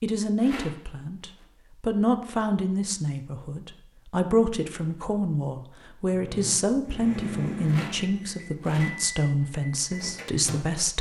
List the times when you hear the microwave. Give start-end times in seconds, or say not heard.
6.2-10.8.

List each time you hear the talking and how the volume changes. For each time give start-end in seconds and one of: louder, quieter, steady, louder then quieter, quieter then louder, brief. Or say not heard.
0.0-10.9 steady.